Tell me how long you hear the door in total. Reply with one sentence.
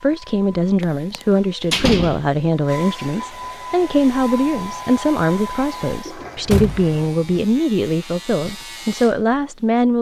The door can be heard for 3 seconds in total.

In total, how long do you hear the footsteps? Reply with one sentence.
You can't hear the footsteps here.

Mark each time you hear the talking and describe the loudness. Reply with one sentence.
You can hear the talking from 0.0 to 9.9 s, at a steady volume.